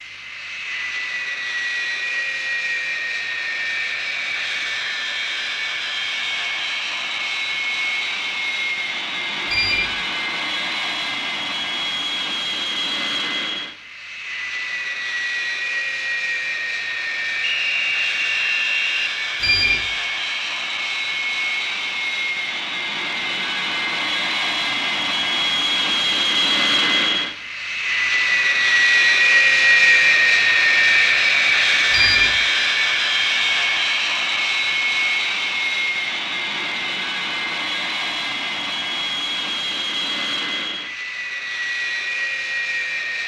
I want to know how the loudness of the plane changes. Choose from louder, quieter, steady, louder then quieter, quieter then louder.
louder then quieter.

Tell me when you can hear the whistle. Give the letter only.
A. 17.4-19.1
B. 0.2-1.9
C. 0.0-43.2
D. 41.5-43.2
A.